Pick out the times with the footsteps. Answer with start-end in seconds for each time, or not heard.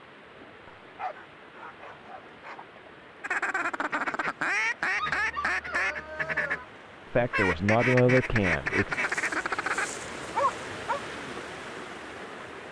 not heard.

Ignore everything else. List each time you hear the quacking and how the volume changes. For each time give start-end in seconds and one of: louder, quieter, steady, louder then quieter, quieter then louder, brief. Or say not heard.
3.2-9.9 steady.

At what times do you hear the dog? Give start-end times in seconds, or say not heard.
0.7-2.6, 5.0-6.7, 8.9-11.0.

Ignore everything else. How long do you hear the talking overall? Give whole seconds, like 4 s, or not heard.
2 s.